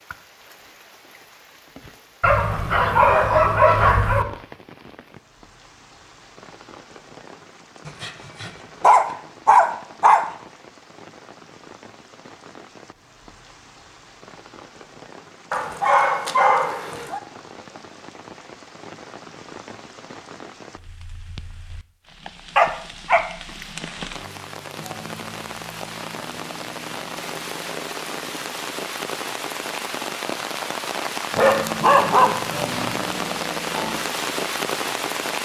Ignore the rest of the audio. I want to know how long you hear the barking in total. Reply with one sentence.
You can hear the barking for 8 seconds altogether.